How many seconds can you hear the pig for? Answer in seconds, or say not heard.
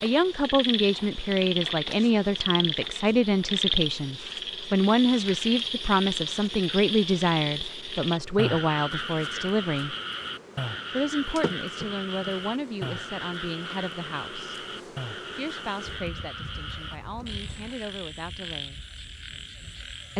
not heard.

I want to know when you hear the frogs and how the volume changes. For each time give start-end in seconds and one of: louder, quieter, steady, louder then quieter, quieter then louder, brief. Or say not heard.
0.0-20.1 quieter.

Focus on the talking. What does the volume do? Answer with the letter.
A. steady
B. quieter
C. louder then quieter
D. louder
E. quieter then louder
B.